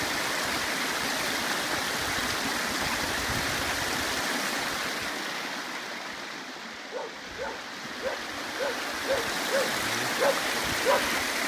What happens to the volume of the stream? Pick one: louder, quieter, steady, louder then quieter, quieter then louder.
quieter then louder.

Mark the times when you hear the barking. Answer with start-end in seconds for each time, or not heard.
6.8-11.2.